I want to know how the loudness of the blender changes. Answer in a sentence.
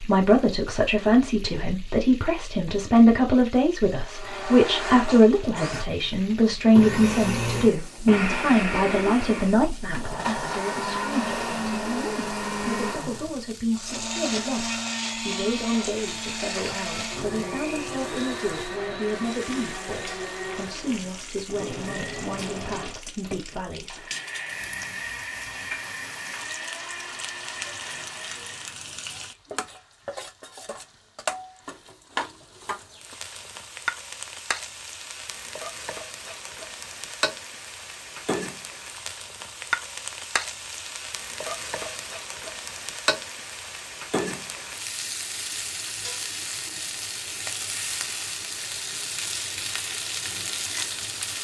The loudness of the blender goes down.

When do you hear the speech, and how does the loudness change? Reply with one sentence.
You can hear the speech from 0.0 to 24.1 s, getting quieter.